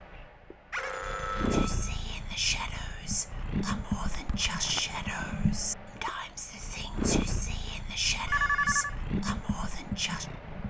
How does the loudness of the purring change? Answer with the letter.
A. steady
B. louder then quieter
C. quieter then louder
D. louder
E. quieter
A.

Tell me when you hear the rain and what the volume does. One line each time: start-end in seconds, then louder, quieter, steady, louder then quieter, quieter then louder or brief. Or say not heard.
not heard.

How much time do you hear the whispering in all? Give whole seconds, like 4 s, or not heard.
9 s.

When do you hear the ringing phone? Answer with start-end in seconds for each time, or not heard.
0.7-1.9, 8.2-8.9.